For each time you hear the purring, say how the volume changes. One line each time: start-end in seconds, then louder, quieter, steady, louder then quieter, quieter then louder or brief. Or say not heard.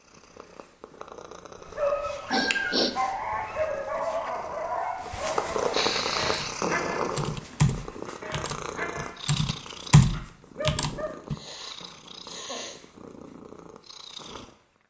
0.0-14.8 louder then quieter.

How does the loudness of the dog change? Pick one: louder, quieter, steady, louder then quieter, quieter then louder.
quieter.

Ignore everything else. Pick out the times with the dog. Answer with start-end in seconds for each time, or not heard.
1.6-11.2.